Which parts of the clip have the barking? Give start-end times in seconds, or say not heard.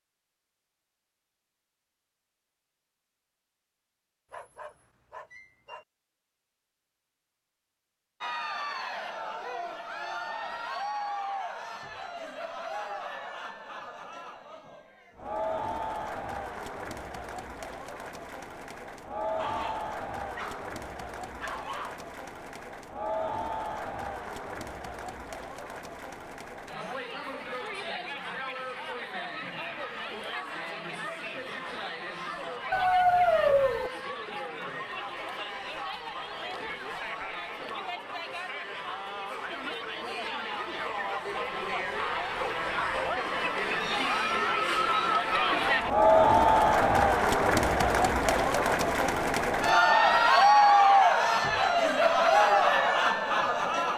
4.3-5.8, 19.4-20.7, 21.4-22.1, 32.7-33.9, 41.5-43.2.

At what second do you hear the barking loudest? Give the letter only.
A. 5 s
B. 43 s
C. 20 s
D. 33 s
D.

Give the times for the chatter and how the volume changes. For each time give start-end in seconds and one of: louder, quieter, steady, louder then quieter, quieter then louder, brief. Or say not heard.
8.2-53.9 louder.